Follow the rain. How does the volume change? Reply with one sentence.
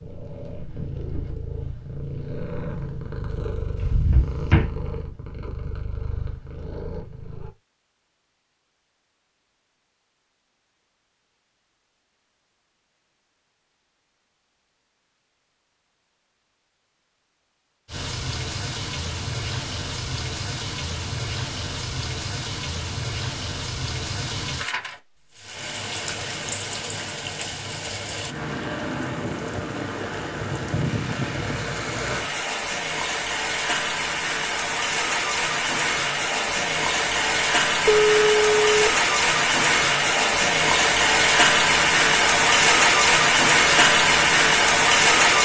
The loudness of the rain goes up.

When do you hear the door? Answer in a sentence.
You can hear the door from 3.8 to 4.7 s.